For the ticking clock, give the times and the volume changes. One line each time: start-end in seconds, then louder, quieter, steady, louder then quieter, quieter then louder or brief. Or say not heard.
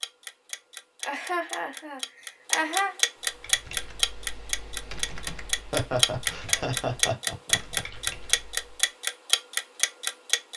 0.0-10.5 louder.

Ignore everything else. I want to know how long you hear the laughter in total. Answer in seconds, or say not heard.
4 s.